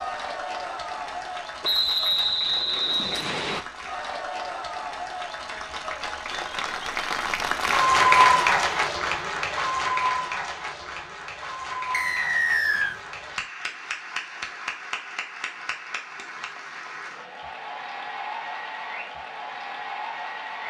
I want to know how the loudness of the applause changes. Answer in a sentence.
The volume of the applause goes up, then down.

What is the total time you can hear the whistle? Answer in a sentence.
You can hear the whistle for 3 seconds altogether.